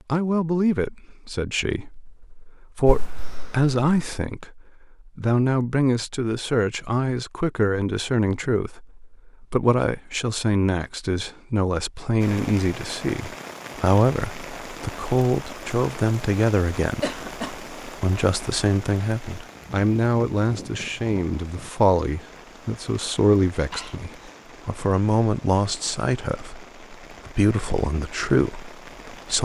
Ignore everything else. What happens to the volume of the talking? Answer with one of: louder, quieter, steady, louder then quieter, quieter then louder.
steady.